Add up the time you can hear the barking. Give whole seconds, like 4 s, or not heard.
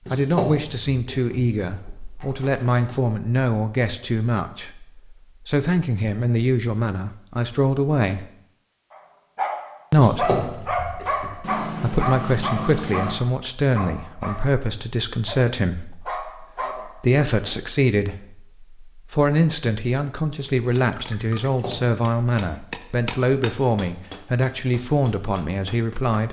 8 s.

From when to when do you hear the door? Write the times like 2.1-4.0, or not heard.
0.1-1.4, 9.9-11.3, 21.4-22.0.